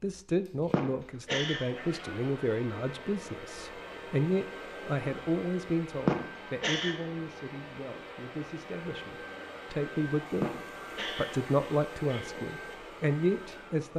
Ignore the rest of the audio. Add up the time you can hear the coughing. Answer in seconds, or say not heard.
4 s.